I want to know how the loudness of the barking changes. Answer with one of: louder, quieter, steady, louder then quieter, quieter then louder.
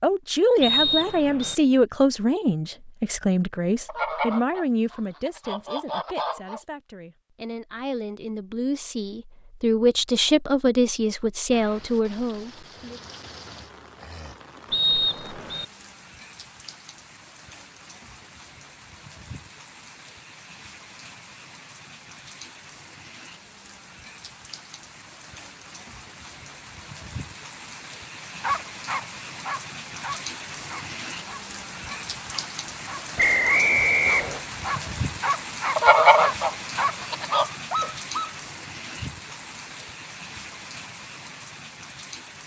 quieter then louder.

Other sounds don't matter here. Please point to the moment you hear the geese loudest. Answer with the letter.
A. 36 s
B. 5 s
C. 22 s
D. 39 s
A.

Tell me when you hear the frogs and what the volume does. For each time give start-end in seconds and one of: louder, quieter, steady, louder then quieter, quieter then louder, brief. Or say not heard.
not heard.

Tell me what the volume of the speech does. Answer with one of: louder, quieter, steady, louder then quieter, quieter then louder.
quieter then louder.